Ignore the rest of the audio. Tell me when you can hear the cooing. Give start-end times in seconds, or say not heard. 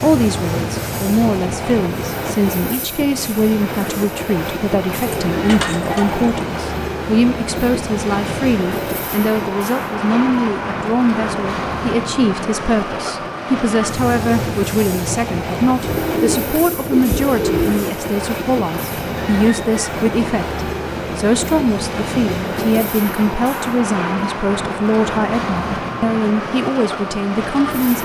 5.0-6.4, 15.8-17.9.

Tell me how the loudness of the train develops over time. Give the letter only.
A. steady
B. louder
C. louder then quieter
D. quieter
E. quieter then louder
A.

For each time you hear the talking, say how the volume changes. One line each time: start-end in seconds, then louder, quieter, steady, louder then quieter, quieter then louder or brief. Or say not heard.
0.0-28.0 steady.